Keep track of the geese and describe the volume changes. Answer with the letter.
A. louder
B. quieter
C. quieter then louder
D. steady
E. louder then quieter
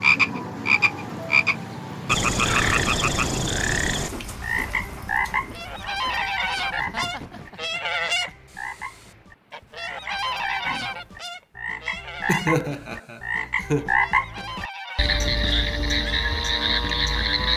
B.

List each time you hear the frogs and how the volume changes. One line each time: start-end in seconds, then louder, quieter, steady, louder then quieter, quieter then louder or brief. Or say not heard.
0.0-17.5 quieter then louder.